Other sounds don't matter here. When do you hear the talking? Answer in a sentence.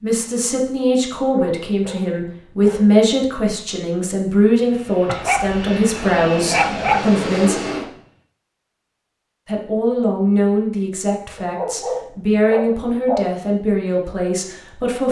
You can hear the talking from 0.0 to 7.6 s and from 9.4 to 15.0 s.